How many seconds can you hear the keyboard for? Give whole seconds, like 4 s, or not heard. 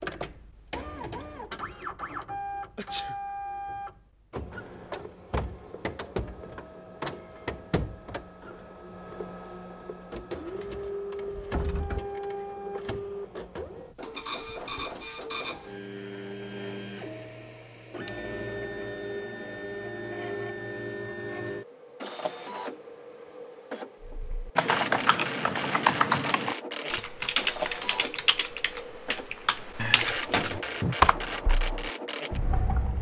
9 s.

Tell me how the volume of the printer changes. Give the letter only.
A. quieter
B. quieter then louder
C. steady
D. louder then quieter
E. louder
C.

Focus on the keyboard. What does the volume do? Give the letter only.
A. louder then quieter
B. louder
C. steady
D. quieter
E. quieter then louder
E.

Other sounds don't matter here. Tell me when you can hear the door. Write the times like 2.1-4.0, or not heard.
10.0-12.0, 29.8-30.9.